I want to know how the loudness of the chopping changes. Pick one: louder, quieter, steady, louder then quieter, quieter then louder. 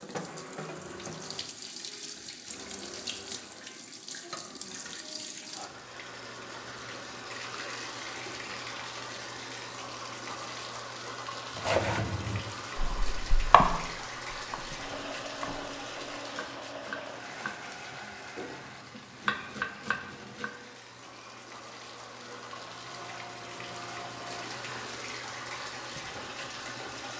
quieter then louder.